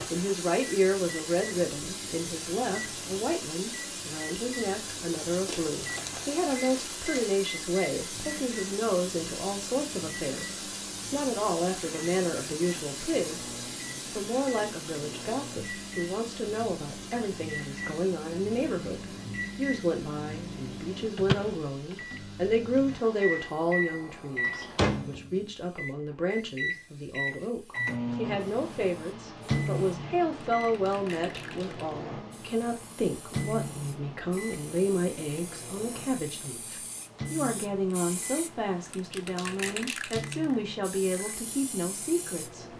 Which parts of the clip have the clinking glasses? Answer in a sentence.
The clinking glasses can't be heard in this clip.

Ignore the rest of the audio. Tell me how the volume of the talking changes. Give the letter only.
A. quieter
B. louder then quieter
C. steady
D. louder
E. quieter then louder
C.